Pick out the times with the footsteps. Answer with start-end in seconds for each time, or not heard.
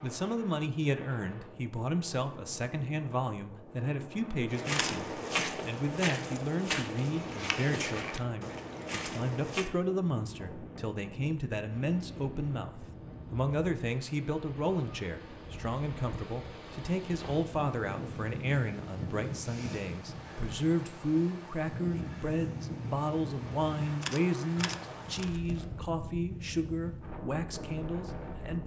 4.5-9.7.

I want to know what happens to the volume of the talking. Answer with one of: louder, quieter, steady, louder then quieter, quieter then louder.
steady.